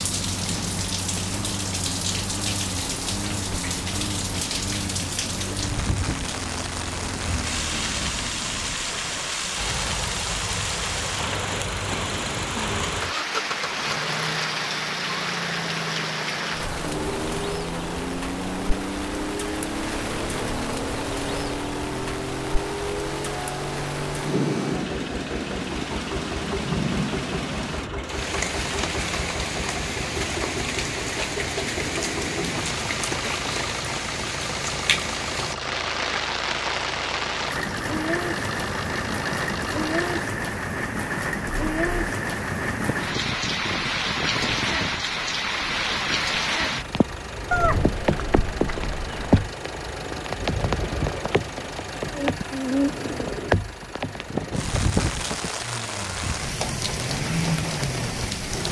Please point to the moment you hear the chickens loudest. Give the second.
48 s.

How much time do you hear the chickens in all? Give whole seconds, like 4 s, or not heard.
2 s.